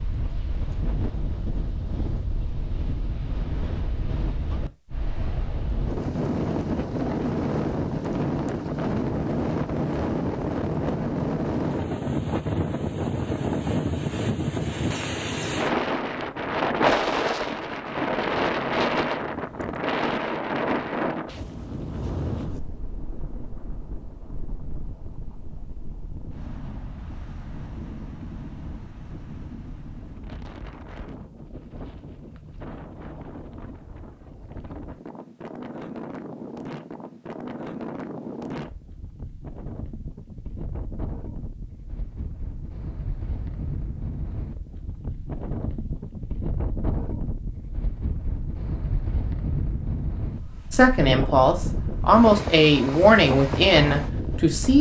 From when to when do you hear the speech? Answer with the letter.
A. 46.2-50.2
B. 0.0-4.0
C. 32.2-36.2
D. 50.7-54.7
D.